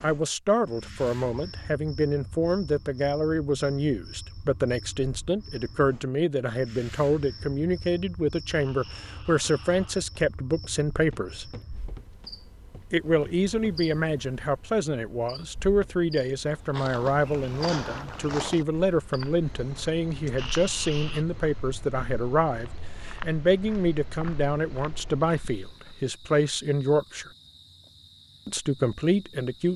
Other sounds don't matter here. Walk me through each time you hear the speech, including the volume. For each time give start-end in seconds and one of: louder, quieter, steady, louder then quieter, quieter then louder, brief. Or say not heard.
0.0-11.6 steady
12.9-27.3 steady
28.4-29.7 brief.